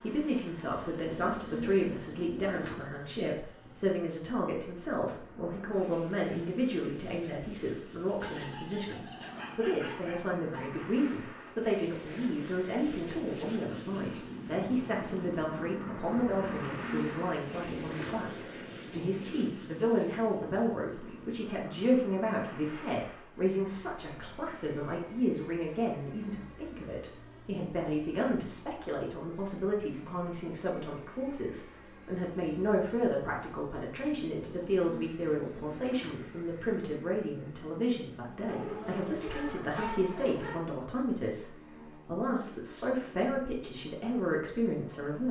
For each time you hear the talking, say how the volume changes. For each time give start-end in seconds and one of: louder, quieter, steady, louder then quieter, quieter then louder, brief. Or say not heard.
0.0-45.2 steady.